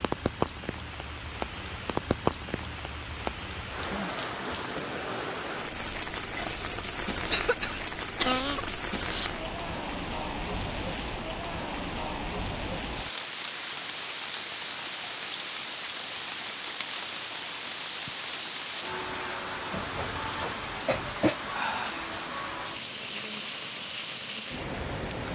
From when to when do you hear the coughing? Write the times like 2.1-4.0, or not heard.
7.3-9.3, 19.7-21.4.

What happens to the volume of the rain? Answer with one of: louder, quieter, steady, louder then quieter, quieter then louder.
steady.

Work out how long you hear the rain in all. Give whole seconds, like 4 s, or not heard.
25 s.